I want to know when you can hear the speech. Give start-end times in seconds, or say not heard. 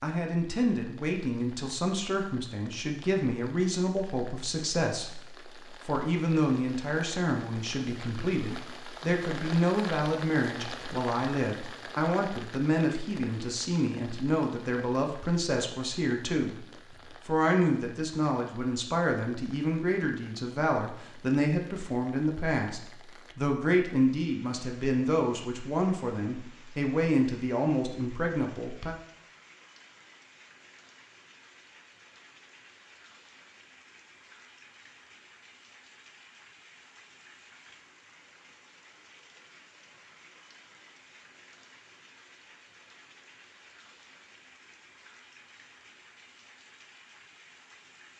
0.0-16.6, 17.2-28.9.